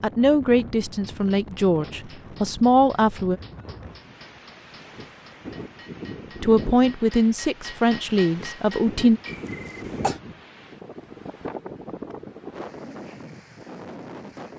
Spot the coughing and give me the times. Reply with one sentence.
You can hear the coughing from 9.2 to 10.2 s.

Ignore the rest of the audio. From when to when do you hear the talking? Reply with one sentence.
You can hear the talking from 0.0 to 3.4 s and from 6.3 to 9.2 s.